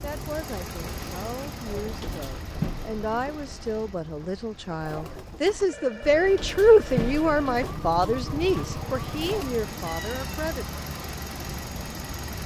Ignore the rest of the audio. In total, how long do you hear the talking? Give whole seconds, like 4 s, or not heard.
11 s.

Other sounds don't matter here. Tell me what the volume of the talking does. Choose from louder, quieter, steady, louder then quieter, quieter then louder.
louder then quieter.